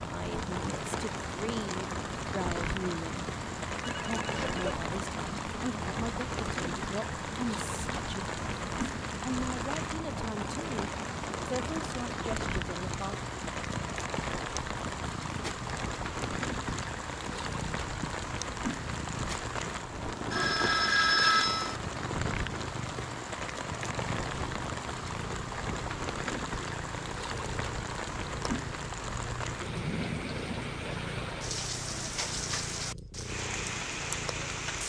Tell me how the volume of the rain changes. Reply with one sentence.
The loudness of the rain stays about the same.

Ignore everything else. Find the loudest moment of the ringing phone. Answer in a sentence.
The loudest moment of the ringing phone is at 21 seconds.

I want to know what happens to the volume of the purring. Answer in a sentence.
The volume of the purring stays about the same.